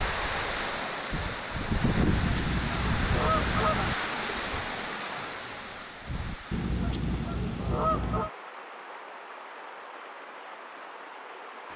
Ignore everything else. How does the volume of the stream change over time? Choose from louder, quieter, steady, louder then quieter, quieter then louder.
quieter.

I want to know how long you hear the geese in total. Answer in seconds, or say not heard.
4 s.